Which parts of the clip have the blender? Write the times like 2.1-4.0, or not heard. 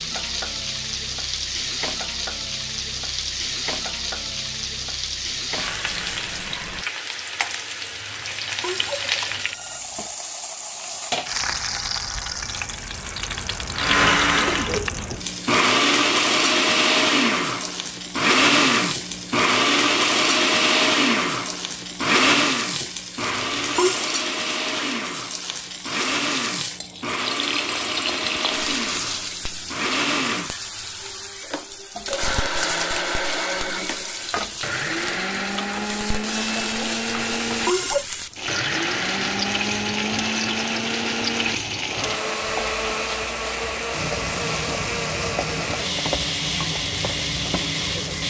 13.7-48.2.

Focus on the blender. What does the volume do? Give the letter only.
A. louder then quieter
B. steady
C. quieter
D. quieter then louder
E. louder
C.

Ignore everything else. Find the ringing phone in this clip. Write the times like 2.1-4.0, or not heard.
8.1-9.8, 23.2-24.1, 37.0-38.0.